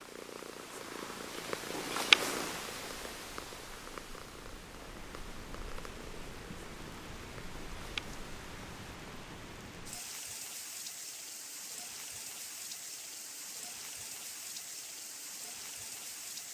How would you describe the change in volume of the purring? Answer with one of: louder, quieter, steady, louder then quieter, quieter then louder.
louder then quieter.